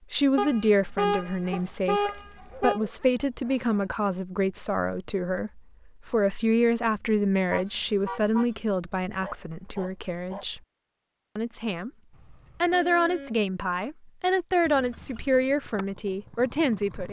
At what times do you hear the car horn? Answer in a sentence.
The car horn can be heard from 0.3 to 2.8 s, from 7.5 to 8.5 s and from 12.1 to 13.3 s.